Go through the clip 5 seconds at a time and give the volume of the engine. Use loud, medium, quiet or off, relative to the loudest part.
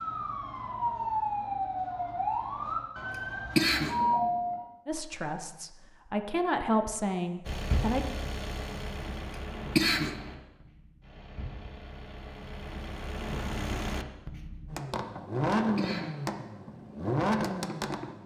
off, medium, medium, loud.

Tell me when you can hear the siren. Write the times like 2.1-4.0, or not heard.
0.0-4.7.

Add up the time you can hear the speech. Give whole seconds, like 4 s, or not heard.
3 s.